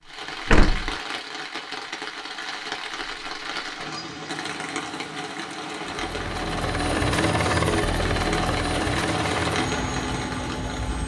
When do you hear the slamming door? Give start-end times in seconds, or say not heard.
0.5-0.9.